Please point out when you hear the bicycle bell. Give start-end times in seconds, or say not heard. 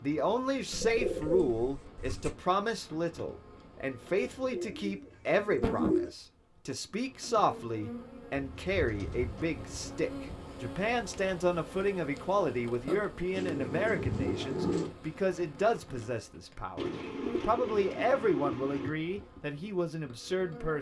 not heard.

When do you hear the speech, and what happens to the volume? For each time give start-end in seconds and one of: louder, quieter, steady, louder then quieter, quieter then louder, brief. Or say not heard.
0.0-20.7 steady.